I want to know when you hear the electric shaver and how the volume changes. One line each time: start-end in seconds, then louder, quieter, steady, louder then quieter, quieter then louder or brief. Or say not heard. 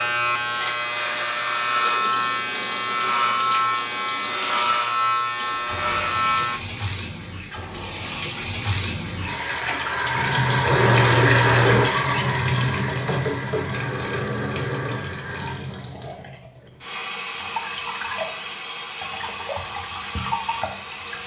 0.0-6.6 steady.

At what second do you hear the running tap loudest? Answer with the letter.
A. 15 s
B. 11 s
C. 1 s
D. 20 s
B.